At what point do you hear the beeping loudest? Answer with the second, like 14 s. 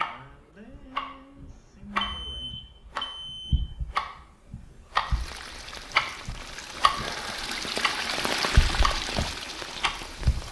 2 s.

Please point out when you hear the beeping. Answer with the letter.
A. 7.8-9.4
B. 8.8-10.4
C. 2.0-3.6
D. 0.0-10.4
C.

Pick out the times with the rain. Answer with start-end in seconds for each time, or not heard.
5.0-10.4.